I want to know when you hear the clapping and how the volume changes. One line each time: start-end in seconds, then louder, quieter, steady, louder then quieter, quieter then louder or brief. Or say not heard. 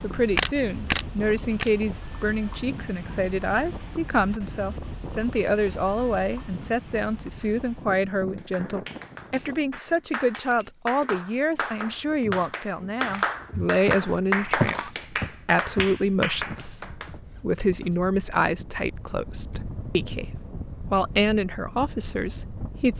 8.3-17.1 louder.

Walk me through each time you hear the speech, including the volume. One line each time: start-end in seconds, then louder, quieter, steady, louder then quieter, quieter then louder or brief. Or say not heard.
0.0-22.9 steady.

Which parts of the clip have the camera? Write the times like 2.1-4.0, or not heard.
0.2-1.7, 13.1-14.9.